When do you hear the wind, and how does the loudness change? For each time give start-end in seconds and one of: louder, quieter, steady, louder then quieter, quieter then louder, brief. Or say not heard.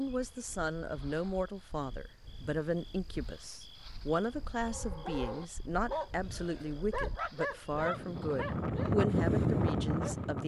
0.0-10.4 louder.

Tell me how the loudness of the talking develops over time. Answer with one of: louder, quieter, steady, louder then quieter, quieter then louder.
steady.